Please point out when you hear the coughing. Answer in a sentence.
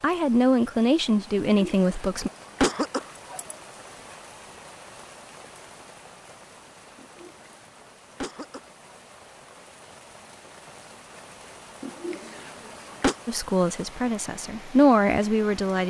You can hear the coughing from 1.6 to 3.5 s, from 7.0 to 9.0 s and from 11.8 to 13.2 s.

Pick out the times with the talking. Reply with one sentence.
The talking can be heard from 0.0 to 2.3 s and from 13.2 to 15.8 s.